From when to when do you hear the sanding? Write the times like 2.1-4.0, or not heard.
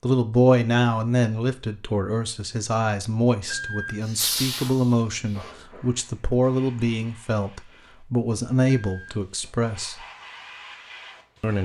4.0-5.4.